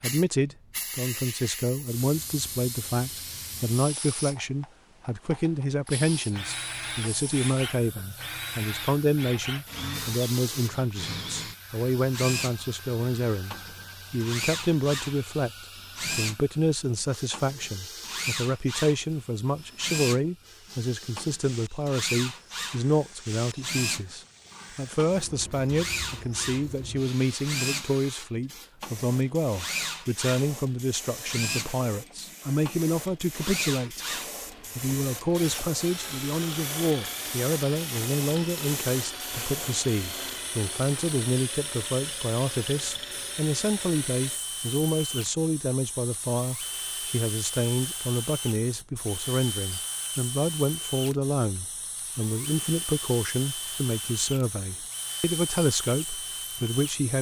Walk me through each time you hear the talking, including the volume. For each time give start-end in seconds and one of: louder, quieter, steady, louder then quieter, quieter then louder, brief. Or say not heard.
0.0-34.0 steady
34.8-57.1 steady.